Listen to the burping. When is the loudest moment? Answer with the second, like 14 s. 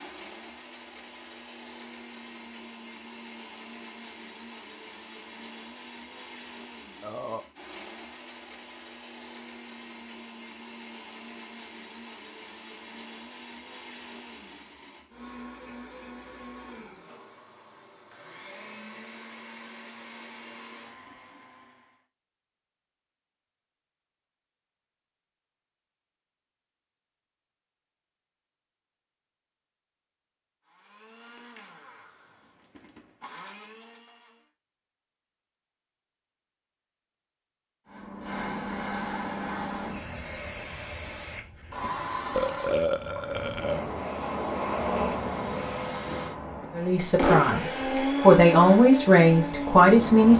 43 s.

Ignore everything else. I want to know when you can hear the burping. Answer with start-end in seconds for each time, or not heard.
7.0-7.5, 42.3-43.9.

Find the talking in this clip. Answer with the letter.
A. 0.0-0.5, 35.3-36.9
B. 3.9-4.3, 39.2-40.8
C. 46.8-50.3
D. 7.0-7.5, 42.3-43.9
C.